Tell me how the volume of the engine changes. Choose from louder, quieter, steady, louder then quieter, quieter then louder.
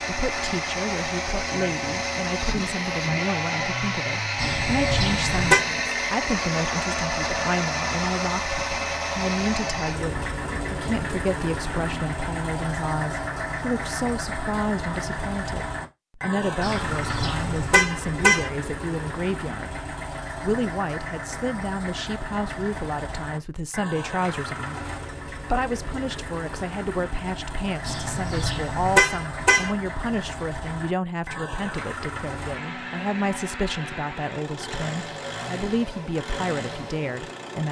quieter.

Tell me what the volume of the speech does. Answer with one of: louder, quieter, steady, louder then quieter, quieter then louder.
steady.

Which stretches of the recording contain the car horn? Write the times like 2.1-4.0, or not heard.
4.3-5.7, 16.6-18.5, 27.8-29.7.